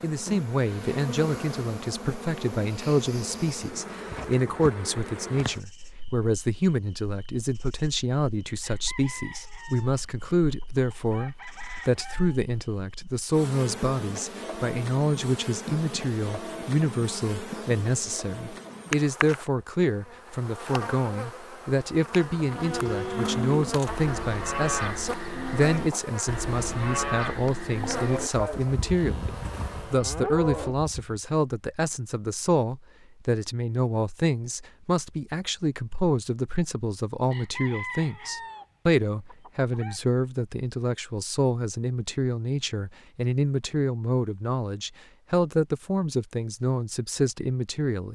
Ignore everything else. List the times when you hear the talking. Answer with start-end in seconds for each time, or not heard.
0.0-48.0.